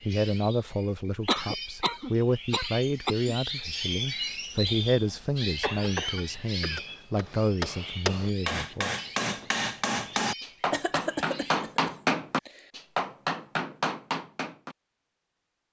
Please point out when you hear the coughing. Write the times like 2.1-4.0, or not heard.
1.2-3.3, 5.6-6.8, 10.7-12.7.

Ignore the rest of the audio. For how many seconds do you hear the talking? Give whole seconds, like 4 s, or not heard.
9 s.